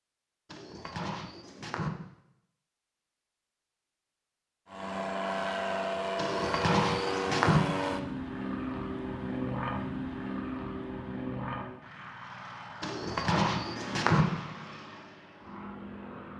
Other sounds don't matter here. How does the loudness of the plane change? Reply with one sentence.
The volume of the plane goes down.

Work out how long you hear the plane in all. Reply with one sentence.
The plane can be heard for 12 seconds in total.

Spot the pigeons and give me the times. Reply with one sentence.
The pigeons can be heard from 0.5 to 1.9 s, from 6.2 to 7.6 s and from 12.8 to 14.2 s.